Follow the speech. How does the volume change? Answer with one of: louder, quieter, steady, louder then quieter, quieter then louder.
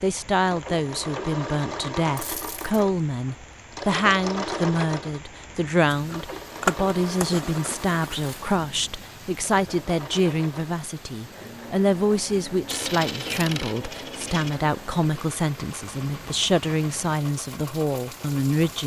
steady.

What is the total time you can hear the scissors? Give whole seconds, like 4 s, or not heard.
2 s.